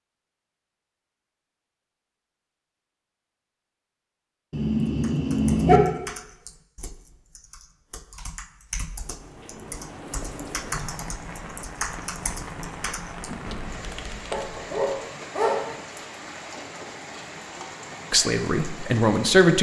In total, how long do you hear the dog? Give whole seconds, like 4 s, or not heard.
3 s.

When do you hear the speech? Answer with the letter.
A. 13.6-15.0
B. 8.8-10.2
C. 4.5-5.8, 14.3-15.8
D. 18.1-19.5
D.